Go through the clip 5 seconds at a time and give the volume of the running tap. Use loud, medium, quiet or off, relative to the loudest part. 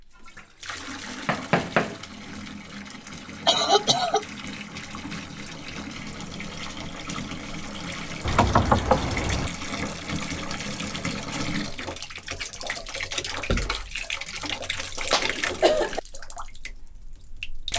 medium, loud, loud, loud.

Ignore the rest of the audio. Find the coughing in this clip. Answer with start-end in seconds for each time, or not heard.
3.5-4.2, 15.1-16.0.